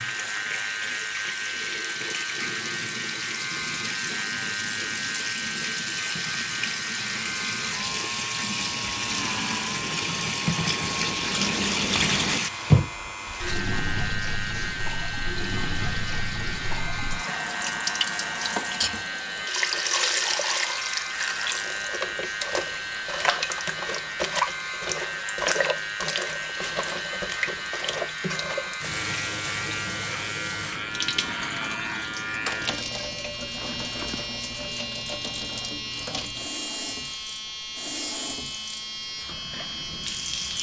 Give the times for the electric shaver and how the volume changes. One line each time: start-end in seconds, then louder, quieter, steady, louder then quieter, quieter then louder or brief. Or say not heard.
0.0-40.5 steady.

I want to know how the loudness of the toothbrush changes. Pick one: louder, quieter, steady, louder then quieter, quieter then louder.
louder.